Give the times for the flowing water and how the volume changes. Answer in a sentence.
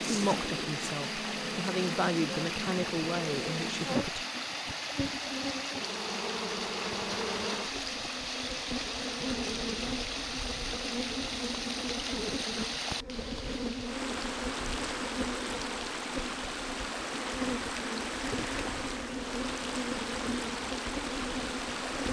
You can hear the flowing water from 0.0 to 22.0 s, at a steady volume.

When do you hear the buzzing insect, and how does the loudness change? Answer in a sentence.
You can hear the buzzing insect from 0.0 to 22.0 s, at a steady volume.